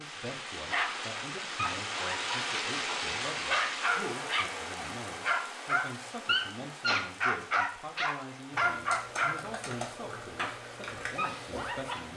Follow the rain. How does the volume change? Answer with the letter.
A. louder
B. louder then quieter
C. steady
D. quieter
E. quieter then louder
D.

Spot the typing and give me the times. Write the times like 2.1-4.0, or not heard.
8.5-12.1.